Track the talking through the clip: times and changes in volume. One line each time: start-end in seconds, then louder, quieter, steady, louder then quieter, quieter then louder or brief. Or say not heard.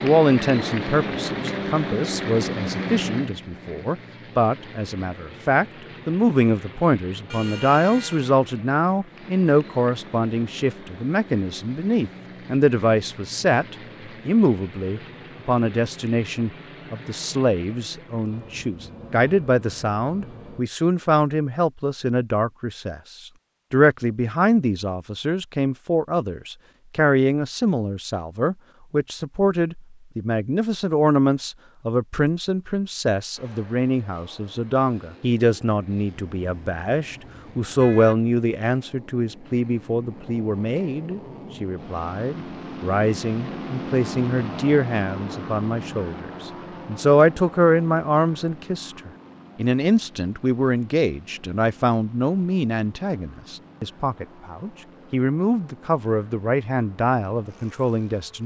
0.0-58.4 steady.